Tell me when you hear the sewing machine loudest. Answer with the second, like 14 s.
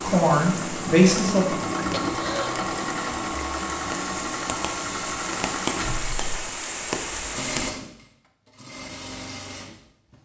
2 s.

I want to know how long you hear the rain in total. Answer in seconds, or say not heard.
8 s.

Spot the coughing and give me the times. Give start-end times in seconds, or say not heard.
2.0-2.6, 5.8-6.6.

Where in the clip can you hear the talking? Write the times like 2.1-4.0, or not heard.
0.0-1.6.